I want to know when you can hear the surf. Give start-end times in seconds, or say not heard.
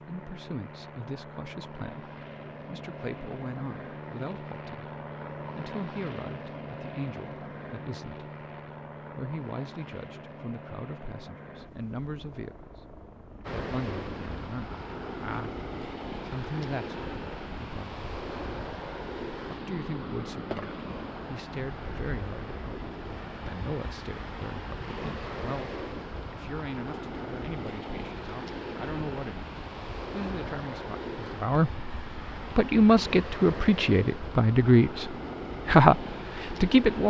13.4-37.0.